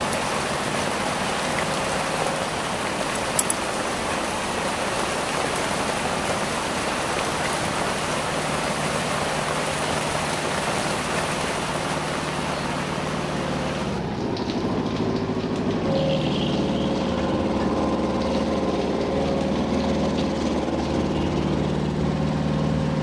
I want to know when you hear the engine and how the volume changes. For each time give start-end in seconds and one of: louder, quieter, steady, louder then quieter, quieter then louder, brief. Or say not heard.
0.0-22.9 louder.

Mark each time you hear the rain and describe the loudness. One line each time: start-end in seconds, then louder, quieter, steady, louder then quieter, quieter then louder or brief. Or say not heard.
0.0-22.9 quieter.